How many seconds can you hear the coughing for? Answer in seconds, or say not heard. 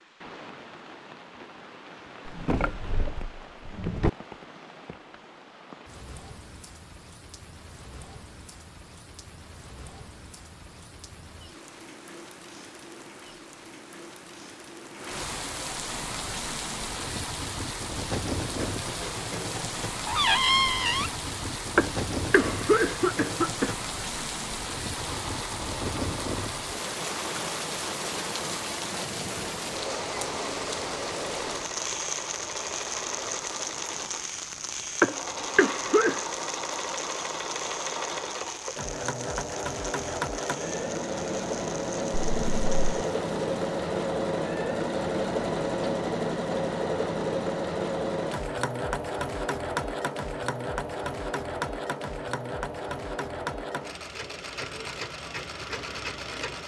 3 s.